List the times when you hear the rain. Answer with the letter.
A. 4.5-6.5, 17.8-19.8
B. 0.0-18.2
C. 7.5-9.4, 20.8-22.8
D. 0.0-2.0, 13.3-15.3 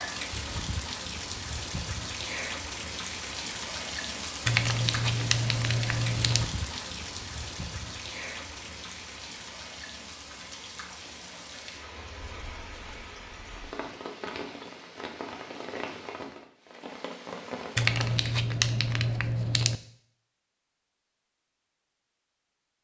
B.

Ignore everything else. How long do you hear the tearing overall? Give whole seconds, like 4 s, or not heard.
4 s.